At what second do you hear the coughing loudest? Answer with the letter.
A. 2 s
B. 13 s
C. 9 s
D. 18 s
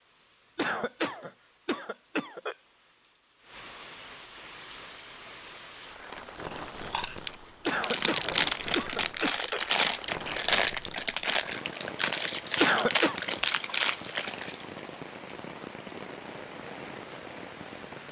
B.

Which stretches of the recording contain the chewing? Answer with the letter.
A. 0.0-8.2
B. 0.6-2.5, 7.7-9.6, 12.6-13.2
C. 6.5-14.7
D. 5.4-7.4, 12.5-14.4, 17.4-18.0
C.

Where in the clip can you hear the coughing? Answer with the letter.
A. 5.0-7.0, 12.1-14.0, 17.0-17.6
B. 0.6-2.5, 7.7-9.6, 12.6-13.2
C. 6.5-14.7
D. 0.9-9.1
B.